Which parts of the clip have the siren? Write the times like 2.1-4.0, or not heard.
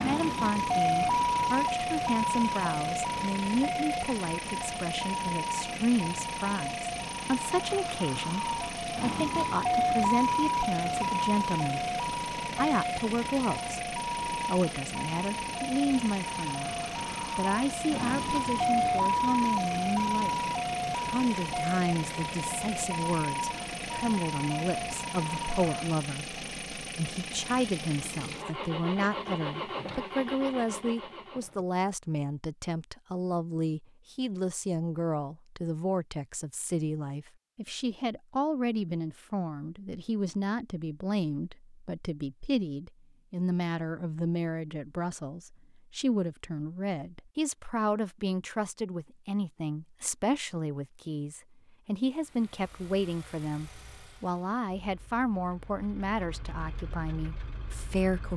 0.0-26.0.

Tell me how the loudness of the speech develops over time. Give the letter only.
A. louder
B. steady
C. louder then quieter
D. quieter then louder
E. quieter
B.